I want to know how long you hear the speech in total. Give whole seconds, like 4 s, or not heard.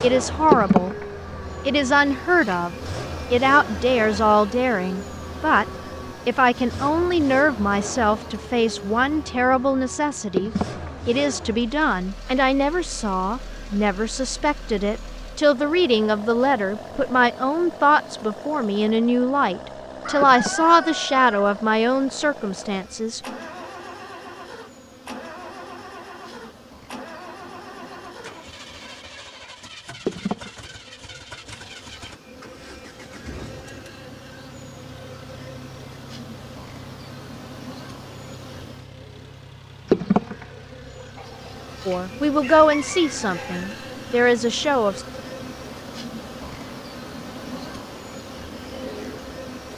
25 s.